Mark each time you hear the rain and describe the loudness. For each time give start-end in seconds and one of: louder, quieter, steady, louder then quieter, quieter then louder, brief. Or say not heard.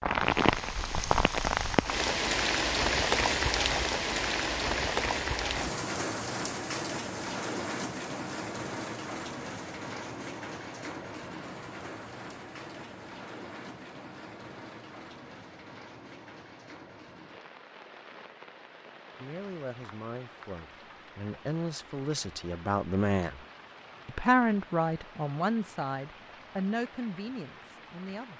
0.0-28.3 quieter.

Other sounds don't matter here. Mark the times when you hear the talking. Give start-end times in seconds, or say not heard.
19.1-23.4, 24.1-28.3.